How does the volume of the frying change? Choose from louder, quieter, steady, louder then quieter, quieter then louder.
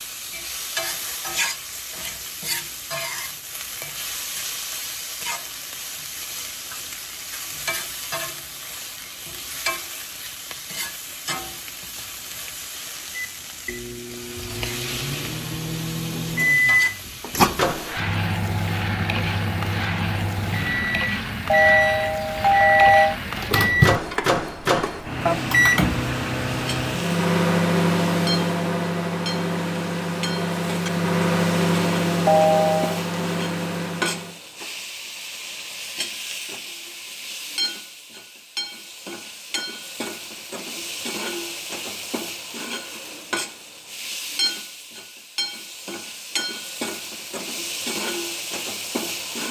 steady.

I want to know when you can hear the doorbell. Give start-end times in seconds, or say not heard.
21.4-23.1, 32.2-33.0.